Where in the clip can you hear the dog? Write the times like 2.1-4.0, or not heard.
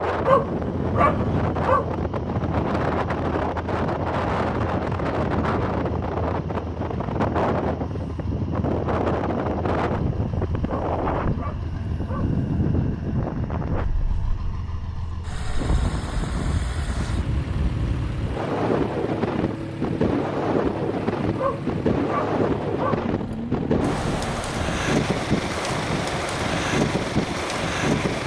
0.2-1.9, 10.7-12.3, 21.4-23.1.